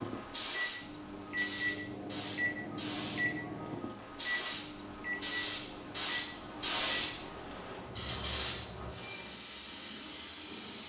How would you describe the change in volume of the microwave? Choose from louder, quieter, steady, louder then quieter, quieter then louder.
quieter.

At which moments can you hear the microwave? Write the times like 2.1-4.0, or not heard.
0.0-9.4.